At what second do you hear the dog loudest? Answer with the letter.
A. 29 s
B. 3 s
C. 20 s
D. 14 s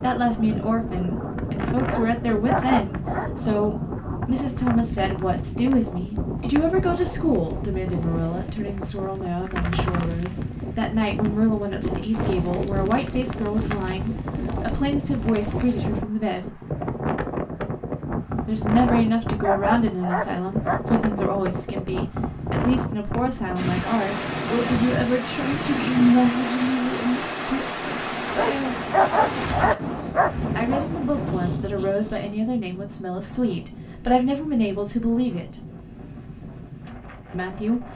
A.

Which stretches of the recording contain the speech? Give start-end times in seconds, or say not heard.
0.0-16.6, 18.4-28.8, 30.6-35.5, 37.3-37.9.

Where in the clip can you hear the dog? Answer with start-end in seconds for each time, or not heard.
1.9-3.3, 18.9-20.8, 28.4-30.9.